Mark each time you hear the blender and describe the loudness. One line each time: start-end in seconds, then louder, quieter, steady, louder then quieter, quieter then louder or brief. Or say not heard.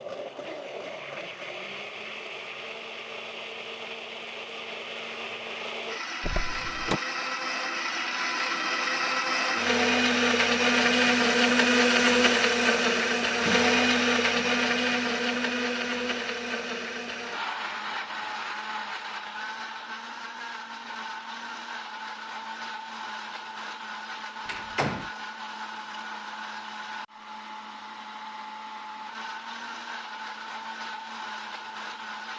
0.0-32.3 louder then quieter.